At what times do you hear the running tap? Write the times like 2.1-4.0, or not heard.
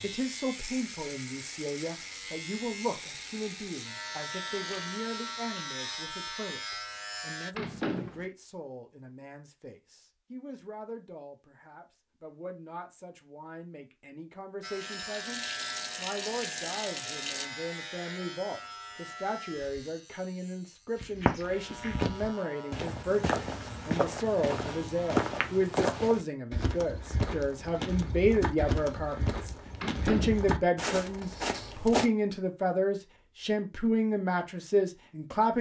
3.9-5.5, 14.8-17.5.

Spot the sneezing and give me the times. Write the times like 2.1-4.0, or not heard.
not heard.